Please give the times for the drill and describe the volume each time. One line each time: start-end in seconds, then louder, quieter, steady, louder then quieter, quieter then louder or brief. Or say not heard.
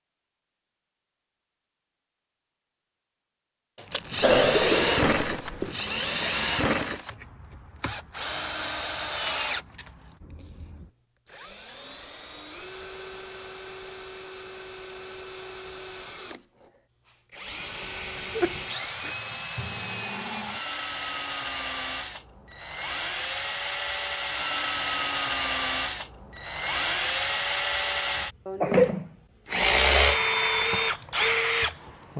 3.8-32.1 quieter then louder.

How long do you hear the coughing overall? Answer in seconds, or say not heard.
3 s.